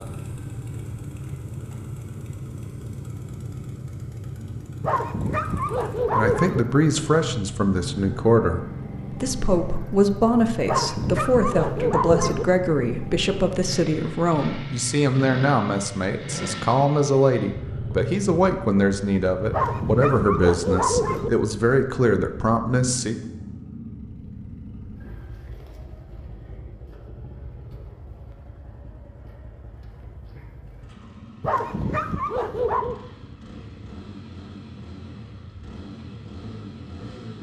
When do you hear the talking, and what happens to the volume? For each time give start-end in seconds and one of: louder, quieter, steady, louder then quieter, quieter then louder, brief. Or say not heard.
6.1-23.1 steady.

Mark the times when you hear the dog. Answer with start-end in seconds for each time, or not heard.
4.8-6.6, 10.7-12.4, 19.5-21.3, 31.4-33.0.